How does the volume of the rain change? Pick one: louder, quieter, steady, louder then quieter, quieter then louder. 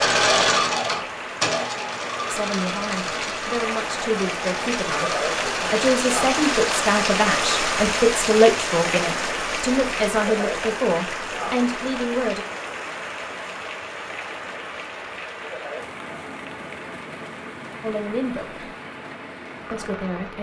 louder then quieter.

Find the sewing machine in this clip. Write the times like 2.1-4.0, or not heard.
0.0-7.7.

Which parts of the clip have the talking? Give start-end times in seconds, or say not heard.
2.3-12.4, 17.8-18.6, 19.7-20.3.